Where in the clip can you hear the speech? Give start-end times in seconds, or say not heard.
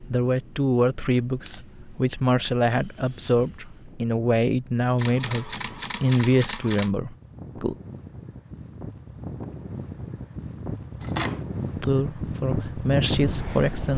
0.1-7.8, 11.8-13.9.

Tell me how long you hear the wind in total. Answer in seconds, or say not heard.
14 s.